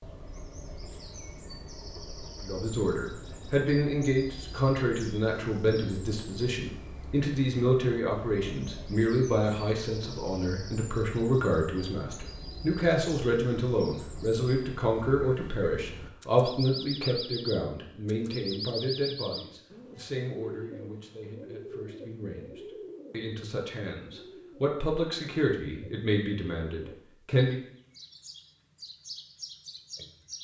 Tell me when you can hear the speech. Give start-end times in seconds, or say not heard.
2.4-27.6.